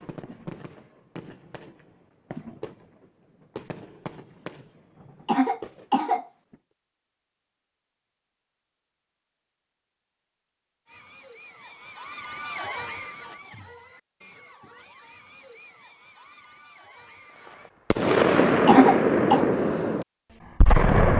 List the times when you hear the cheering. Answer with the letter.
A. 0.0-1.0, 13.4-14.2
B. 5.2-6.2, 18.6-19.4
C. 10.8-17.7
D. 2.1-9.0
C.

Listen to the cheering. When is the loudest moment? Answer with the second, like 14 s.
13 s.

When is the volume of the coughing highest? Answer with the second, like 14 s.
19 s.